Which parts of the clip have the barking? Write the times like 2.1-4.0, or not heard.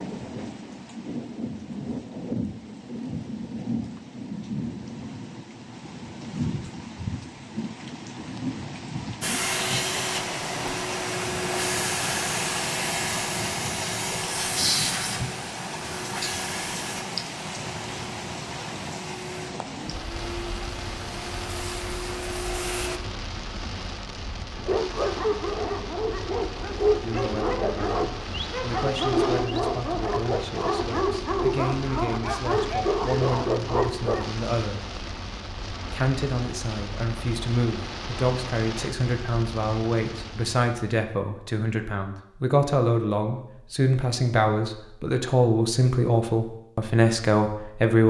24.6-34.2.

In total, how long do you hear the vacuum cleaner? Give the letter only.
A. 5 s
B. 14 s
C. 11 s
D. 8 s
B.